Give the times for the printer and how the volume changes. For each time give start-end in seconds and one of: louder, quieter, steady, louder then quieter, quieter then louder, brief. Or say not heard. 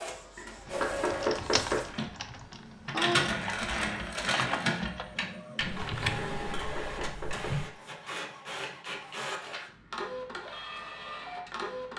0.0-11.9 louder then quieter.